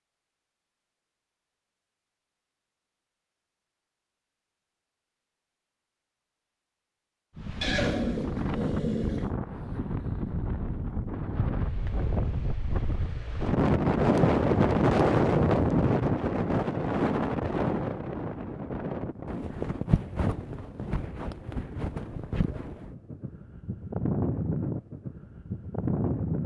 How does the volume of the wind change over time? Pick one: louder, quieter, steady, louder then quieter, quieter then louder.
louder then quieter.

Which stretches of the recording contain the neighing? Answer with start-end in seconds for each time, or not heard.
7.6-9.3.